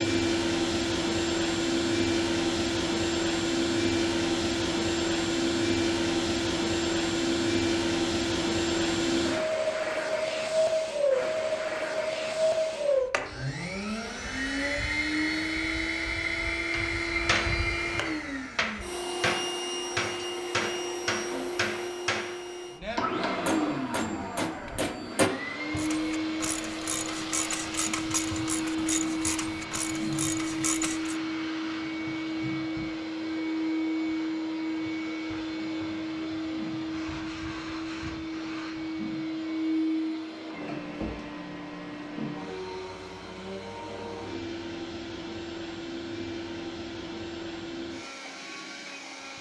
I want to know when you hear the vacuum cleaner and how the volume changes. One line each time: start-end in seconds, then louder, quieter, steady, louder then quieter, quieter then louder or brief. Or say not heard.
0.0-49.3 quieter.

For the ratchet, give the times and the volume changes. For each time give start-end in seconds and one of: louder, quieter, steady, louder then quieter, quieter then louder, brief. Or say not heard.
25.8-31.2 steady.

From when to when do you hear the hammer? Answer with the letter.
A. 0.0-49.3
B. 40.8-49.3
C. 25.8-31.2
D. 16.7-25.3
D.